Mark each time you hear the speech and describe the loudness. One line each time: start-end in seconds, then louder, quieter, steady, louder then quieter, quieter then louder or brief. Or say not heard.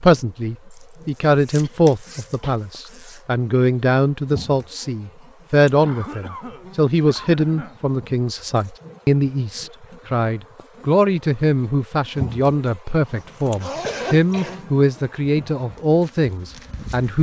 0.0-17.1 steady.